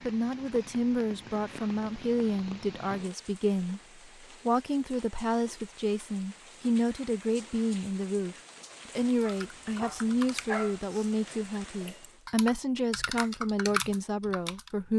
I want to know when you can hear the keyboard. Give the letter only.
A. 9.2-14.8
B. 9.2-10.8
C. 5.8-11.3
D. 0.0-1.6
A.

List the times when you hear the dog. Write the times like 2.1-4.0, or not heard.
9.2-10.8.